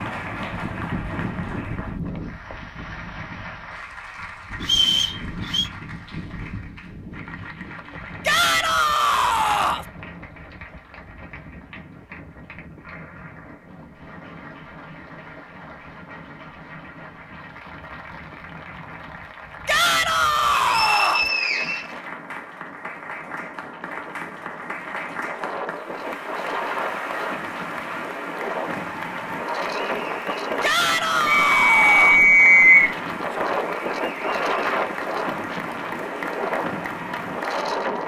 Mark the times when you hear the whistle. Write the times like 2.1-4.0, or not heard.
4.6-5.7, 20.6-21.9, 31.2-33.0.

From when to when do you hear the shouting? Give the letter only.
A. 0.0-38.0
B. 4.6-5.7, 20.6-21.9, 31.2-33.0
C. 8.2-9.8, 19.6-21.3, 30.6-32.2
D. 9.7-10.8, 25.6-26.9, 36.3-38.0
C.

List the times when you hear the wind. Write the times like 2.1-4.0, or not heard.
0.0-38.0.